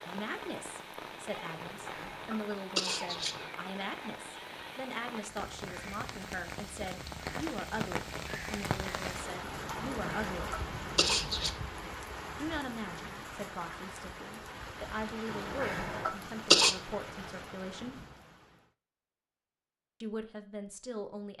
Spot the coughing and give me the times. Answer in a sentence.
The coughing can be heard from 1.6 to 3.5 s, from 9.9 to 11.5 s and from 15.3 to 16.8 s.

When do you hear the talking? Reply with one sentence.
The talking can be heard from 0.0 to 10.6 s, from 12.3 to 18.0 s and from 20.0 to 21.3 s.